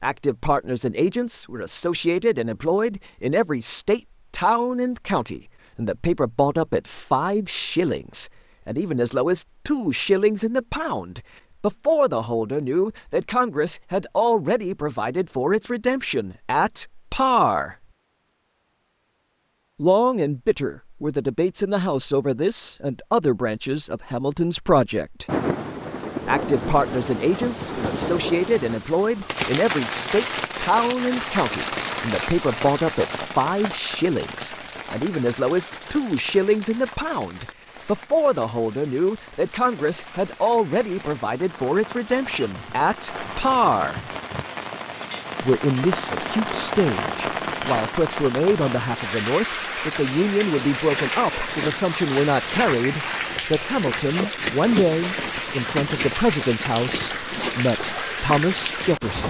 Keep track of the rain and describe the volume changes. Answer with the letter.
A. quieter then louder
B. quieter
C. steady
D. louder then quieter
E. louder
A.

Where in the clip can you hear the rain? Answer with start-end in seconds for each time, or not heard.
25.2-59.2.